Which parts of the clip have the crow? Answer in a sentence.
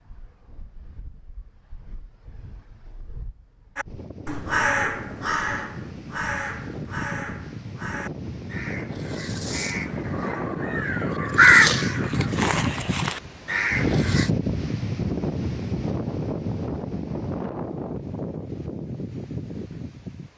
You can hear the crow from 3.8 to 14.3 s.